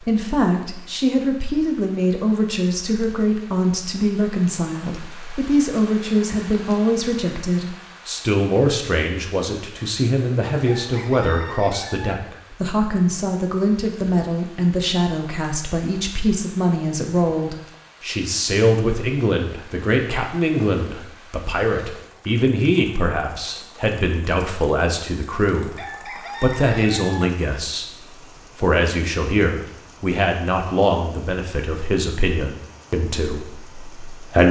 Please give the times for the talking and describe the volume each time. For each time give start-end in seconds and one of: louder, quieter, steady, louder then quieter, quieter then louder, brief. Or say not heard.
0.0-25.8 steady
26.4-27.9 brief
28.6-34.4 quieter.